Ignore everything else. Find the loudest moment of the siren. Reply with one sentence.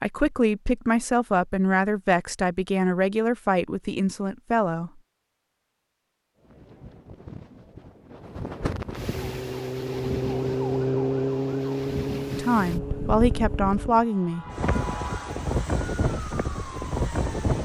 The loudest moment of the siren is at 11 seconds.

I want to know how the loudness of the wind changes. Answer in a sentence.
The loudness of the wind goes up.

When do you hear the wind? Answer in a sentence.
You can hear the wind from 6.3 to 17.6 s.